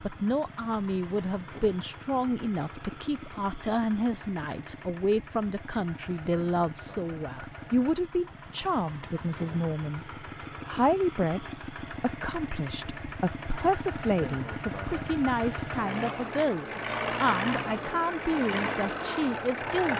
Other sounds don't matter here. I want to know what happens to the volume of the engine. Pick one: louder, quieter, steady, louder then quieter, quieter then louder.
louder.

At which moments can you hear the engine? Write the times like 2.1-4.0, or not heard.
0.0-19.9.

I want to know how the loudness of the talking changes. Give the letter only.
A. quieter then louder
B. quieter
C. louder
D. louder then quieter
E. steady
E.